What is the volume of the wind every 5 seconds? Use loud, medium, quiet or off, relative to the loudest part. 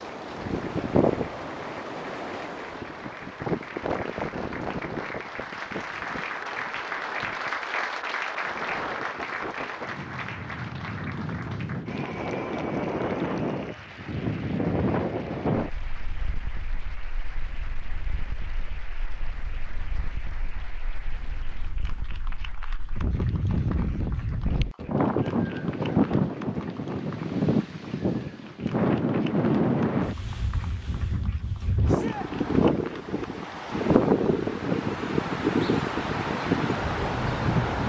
medium, quiet, medium, medium, medium, loud, loud, loud.